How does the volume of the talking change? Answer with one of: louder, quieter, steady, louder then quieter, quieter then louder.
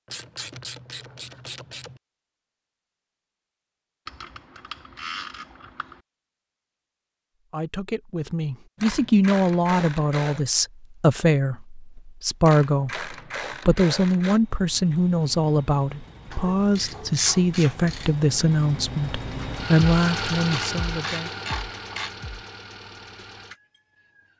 steady.